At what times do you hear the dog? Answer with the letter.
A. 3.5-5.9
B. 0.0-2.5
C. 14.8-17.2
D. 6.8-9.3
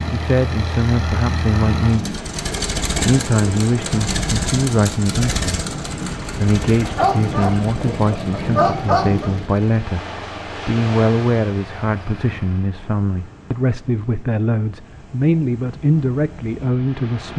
D.